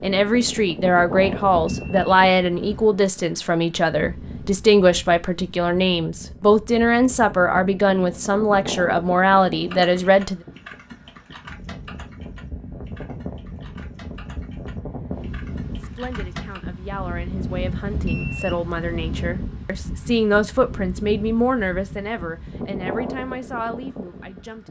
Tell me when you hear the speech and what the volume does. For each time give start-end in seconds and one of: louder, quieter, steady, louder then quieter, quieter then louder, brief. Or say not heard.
0.0-10.4 steady
15.7-24.6 louder then quieter.